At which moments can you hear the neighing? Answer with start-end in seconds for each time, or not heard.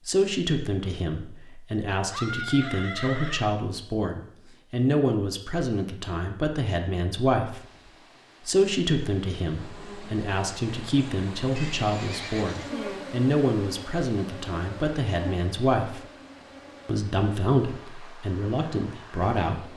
2.0-3.5, 11.6-12.8.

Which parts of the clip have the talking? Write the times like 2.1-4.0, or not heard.
0.1-7.6, 8.4-16.0, 16.9-19.7.